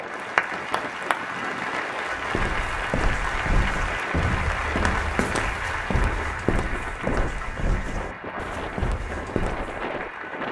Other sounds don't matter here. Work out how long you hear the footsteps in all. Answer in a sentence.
You can hear the footsteps for 8 seconds altogether.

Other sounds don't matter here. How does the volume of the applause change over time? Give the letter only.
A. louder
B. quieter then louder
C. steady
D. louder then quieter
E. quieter
E.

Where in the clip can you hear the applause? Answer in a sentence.
You can hear the applause from 0.0 to 10.4 s.